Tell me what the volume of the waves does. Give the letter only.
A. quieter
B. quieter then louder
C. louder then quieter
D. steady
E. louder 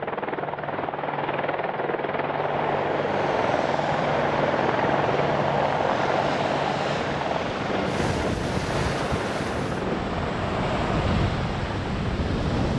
E.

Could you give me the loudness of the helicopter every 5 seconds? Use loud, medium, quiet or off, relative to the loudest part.
loud, loud, medium.